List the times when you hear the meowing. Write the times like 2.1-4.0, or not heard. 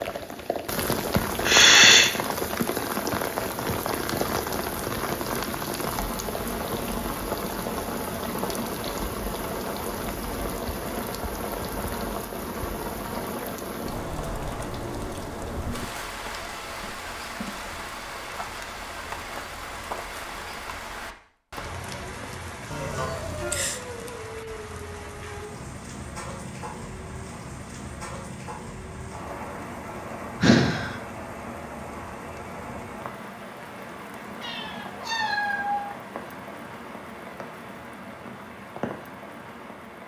34.4-35.9.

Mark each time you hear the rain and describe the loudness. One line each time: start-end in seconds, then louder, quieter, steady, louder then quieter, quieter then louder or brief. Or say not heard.
0.0-40.0 quieter.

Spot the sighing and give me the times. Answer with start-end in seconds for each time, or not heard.
1.4-2.1, 22.7-23.8, 30.4-31.0.